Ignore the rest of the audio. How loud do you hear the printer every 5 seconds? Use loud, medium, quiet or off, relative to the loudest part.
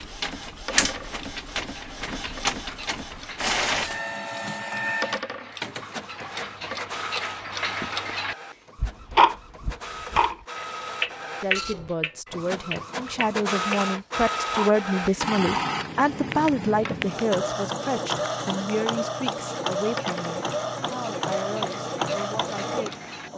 loud, medium, loud, loud, loud.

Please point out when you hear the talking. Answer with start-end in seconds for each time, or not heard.
11.4-23.3.